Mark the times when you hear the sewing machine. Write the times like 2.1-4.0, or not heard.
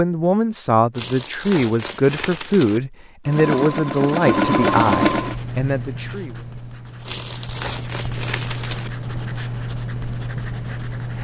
3.2-5.3.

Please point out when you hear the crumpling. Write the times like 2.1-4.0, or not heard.
0.9-2.8, 7.0-8.9.